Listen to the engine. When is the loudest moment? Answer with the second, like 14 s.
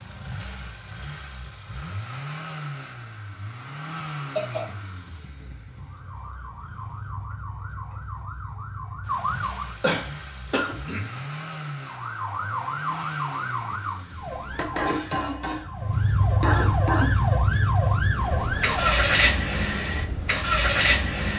19 s.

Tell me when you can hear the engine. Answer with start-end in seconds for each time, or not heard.
0.0-21.3.